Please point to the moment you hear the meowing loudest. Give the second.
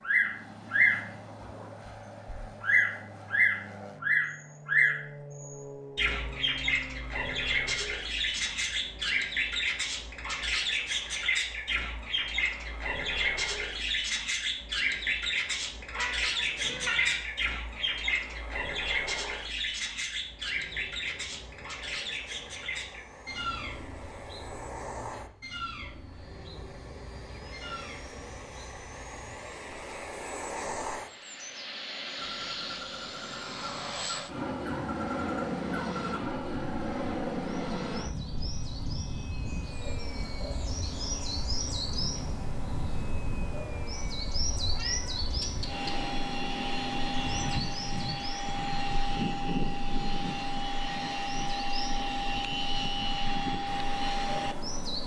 17 s.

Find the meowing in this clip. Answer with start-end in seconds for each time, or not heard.
15.9-17.2, 44.7-45.9.